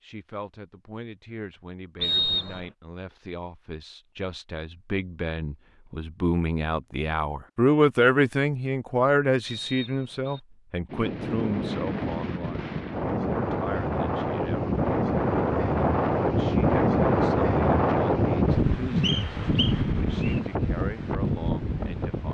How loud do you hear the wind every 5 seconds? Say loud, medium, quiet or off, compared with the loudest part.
off, off, medium, loud, medium.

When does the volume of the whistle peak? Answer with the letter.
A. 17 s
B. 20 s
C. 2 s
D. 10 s
C.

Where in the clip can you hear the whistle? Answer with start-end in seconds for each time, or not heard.
2.0-2.6, 9.4-10.4, 19.0-20.4.